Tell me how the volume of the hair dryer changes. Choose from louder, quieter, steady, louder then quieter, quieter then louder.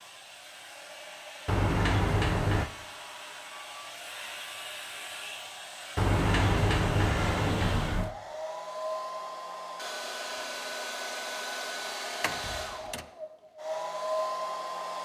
louder.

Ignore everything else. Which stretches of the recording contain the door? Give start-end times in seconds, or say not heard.
1.4-2.7, 6.0-8.2, 12.2-13.1.